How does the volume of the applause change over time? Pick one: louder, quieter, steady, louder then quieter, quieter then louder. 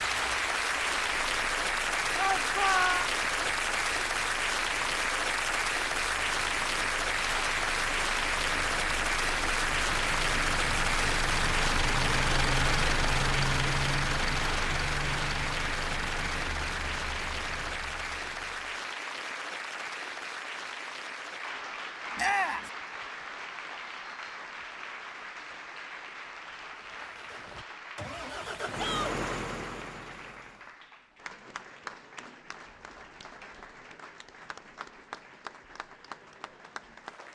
quieter.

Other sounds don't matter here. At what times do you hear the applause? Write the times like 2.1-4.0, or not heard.
0.0-37.3.